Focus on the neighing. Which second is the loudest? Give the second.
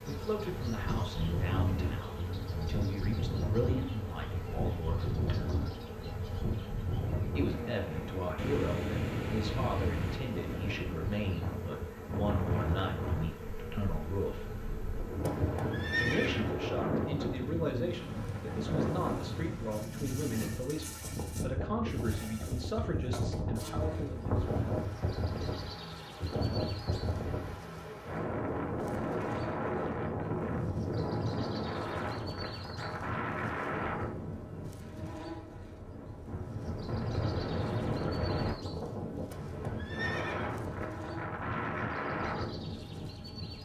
16 s.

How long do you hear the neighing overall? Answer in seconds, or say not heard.
3 s.